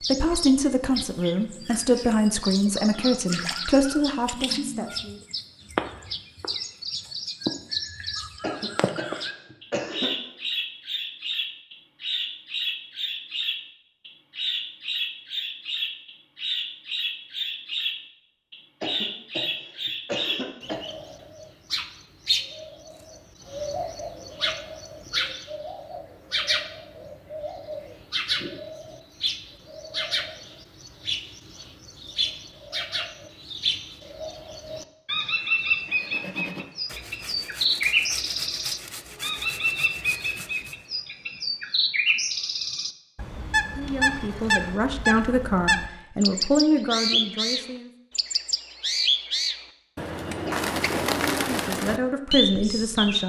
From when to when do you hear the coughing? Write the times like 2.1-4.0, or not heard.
8.4-10.2, 18.8-20.8, 50.5-51.0.